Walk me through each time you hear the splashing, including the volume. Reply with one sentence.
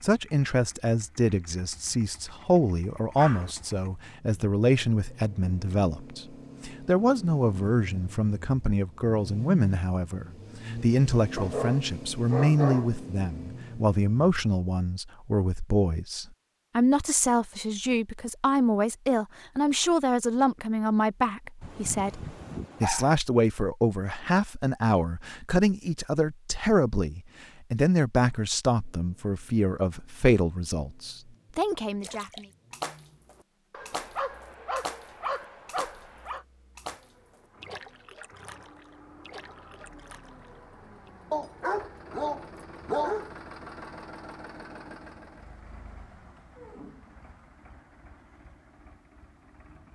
The splashing can be heard from 32.0 to 41.1 s, getting quieter.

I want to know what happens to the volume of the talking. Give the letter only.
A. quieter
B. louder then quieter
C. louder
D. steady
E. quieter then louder
D.